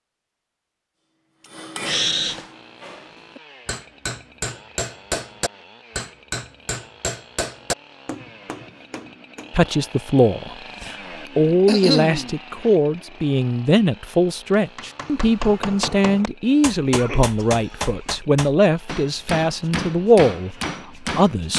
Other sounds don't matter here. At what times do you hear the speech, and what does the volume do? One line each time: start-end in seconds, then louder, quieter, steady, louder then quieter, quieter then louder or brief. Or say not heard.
9.5-21.5 steady.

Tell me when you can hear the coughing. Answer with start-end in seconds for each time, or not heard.
1.9-2.5, 11.2-12.3, 16.9-18.1.